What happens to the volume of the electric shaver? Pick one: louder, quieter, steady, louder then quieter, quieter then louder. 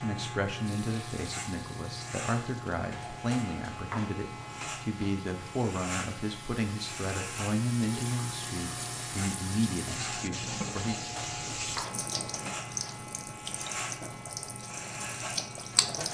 steady.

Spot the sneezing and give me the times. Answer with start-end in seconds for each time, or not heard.
not heard.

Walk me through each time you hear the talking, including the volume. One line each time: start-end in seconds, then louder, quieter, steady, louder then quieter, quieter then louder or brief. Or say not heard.
0.0-10.9 steady.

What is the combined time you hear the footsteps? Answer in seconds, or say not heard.
not heard.